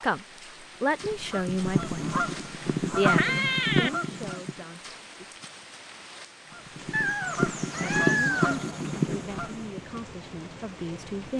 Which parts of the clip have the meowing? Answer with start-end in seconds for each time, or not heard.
3.0-3.9, 6.9-8.6.